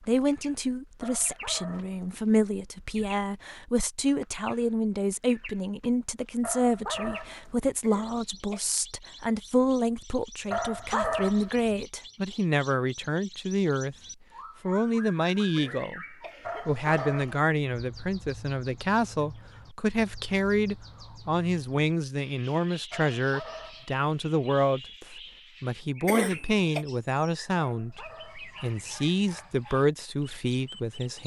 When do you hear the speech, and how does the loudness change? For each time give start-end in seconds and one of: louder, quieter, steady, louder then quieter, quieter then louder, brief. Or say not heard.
0.0-13.9 steady
14.6-16.1 brief
16.6-31.2 steady.